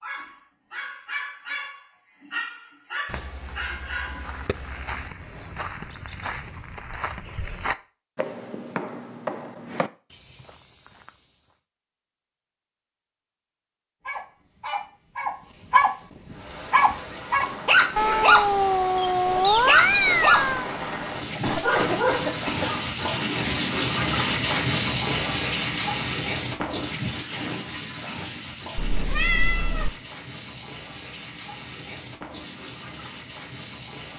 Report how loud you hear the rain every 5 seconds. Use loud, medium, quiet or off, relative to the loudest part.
off, off, off, medium, loud, loud, quiet.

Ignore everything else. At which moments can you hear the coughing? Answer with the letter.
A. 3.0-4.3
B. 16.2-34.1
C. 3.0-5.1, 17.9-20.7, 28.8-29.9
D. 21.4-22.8
D.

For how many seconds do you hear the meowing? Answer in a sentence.
You can hear the meowing for 6 seconds altogether.